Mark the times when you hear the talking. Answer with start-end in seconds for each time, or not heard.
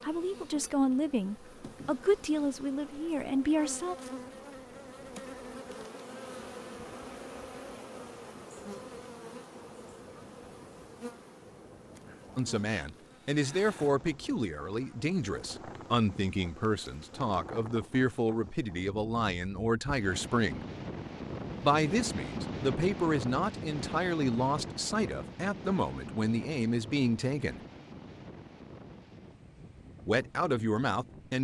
0.0-4.0, 12.3-20.6, 21.6-27.6, 30.1-31.3.